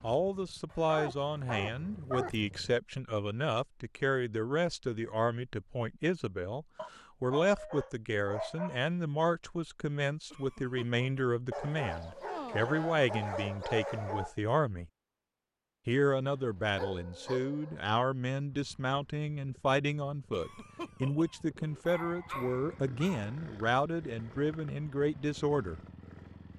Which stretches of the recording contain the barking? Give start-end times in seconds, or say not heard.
0.7-2.4, 6.8-8.8, 11.5-14.3, 16.3-17.9, 21.9-23.4.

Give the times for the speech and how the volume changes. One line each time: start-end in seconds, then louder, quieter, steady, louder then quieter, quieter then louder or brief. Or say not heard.
0.0-14.9 steady
15.8-25.8 steady.